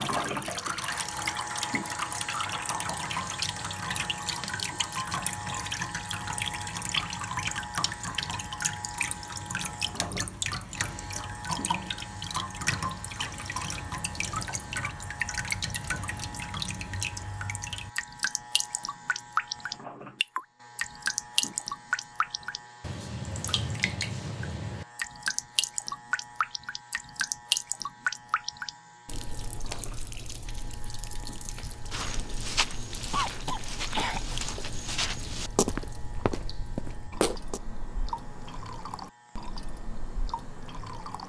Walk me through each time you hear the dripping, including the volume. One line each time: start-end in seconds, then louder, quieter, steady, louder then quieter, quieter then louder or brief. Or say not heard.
0.0-41.2 quieter.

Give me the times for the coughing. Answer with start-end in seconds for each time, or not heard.
33.1-34.4.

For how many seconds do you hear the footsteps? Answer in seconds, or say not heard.
6 s.